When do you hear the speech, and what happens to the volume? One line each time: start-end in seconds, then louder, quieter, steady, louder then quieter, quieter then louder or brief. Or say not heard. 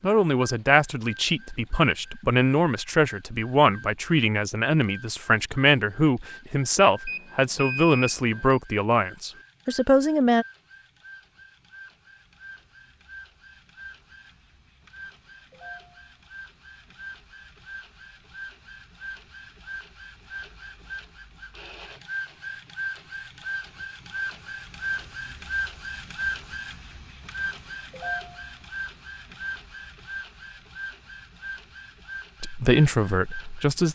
0.0-10.4 steady
32.4-33.9 brief.